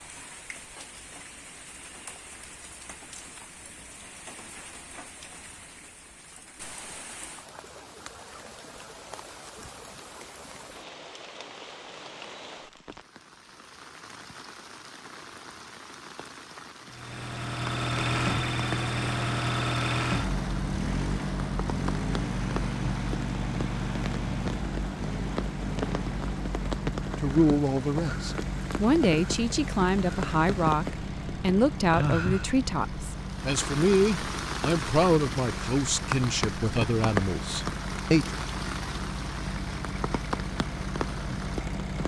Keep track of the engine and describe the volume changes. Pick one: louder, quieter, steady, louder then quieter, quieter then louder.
quieter.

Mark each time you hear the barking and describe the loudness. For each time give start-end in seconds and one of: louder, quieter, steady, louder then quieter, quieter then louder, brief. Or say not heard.
not heard.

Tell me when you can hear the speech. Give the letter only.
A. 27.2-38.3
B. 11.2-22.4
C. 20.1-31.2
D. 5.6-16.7
A.